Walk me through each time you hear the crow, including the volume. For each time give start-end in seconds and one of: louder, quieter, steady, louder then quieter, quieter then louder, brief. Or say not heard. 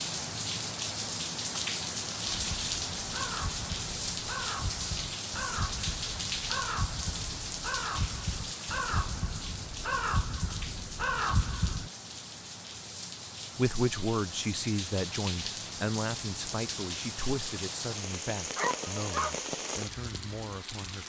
2.3-11.9 louder.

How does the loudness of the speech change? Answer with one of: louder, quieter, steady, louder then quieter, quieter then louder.
quieter.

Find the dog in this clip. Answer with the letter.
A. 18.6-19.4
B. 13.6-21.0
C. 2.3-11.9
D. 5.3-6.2
A.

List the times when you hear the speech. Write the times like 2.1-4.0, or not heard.
13.6-21.0.